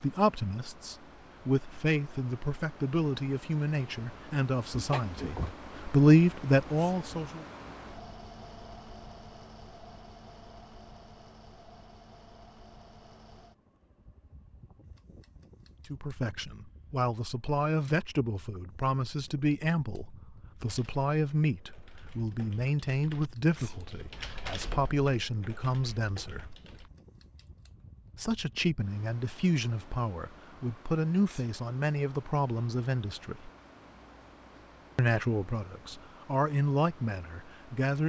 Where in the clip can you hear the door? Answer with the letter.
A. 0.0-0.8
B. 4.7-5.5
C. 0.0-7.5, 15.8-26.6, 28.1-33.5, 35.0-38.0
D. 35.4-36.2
B.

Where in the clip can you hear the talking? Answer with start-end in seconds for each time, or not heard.
0.0-7.5, 15.8-26.6, 28.1-33.5, 35.0-38.0.